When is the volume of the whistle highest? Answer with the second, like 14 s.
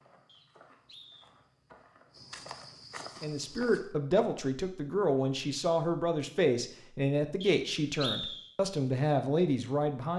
8 s.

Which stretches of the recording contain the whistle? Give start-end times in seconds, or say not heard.
0.2-1.3, 7.4-8.5.